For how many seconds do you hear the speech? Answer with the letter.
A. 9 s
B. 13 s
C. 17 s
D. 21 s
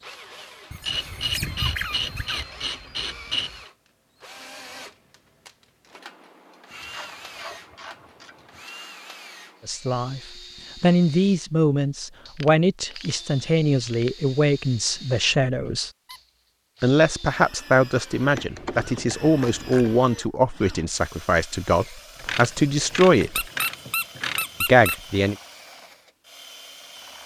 B.